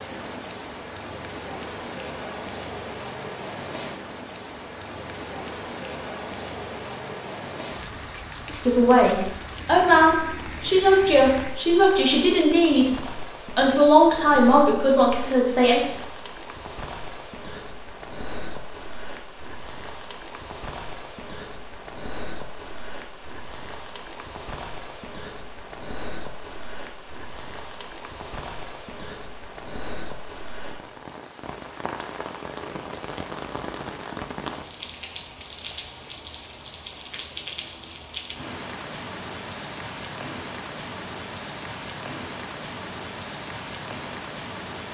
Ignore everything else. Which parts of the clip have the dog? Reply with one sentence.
You can't hear the dog here.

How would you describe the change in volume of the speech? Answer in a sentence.
The loudness of the speech stays about the same.